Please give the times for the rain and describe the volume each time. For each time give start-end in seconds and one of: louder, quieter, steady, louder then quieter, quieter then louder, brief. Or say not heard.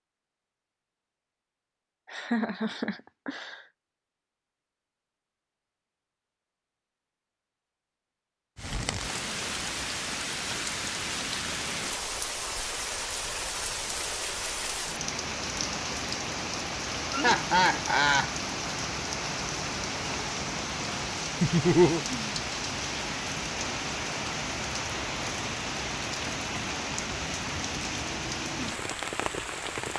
8.6-29.9 steady.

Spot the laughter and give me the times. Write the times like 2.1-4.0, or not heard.
2.0-3.6, 17.1-18.3, 21.4-22.0.